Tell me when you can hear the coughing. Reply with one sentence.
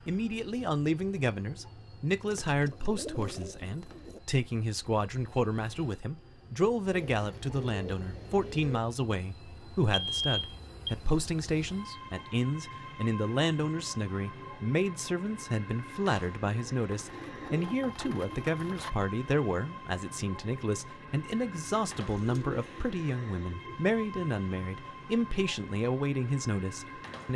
You can't hear the coughing here.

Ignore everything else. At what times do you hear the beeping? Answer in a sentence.
You can hear the beeping from 9.6 to 10.9 s.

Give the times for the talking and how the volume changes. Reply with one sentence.
You can hear the talking from 0.1 to 27.3 s, at a steady volume.